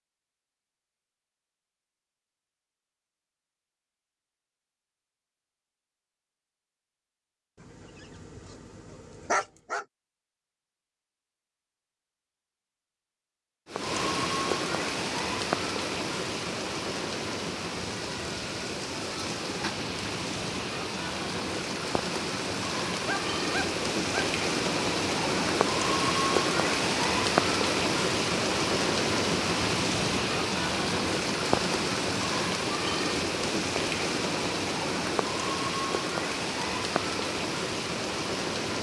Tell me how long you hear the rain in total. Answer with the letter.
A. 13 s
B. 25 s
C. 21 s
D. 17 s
B.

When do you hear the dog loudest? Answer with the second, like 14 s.
9 s.